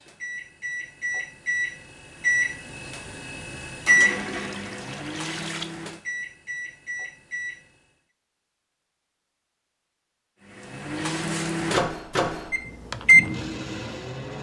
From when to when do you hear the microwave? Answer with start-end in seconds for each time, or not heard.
0.0-7.7, 10.5-14.3.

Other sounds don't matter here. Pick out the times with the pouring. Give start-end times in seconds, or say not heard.
4.0-5.8.